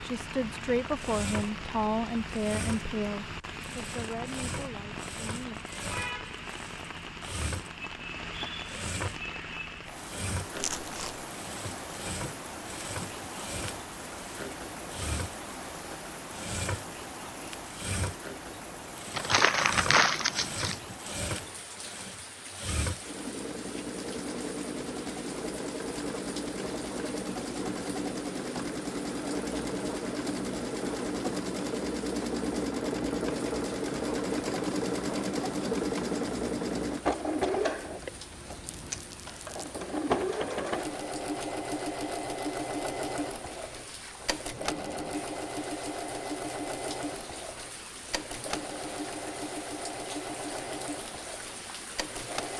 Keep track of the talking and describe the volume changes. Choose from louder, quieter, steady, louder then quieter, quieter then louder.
quieter.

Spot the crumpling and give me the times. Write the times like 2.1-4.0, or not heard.
10.6-11.3, 19.1-20.8, 38.5-39.7.